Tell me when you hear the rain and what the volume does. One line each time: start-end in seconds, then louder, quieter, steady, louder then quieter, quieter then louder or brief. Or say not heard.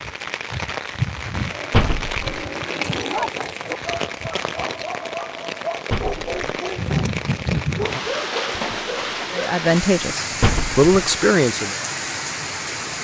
0.0-12.9 steady.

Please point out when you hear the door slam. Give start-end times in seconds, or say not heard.
1.7-2.4, 5.9-6.5, 10.4-10.9.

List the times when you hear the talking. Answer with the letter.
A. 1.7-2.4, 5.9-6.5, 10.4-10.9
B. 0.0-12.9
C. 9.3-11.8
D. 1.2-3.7
C.